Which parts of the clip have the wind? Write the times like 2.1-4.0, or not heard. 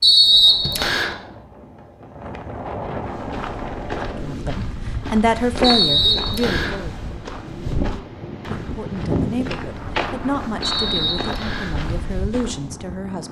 0.0-13.2.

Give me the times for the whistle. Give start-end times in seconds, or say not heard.
0.0-1.1, 5.6-6.8, 10.6-11.8.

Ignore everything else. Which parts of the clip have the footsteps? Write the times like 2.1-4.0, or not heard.
3.0-12.7.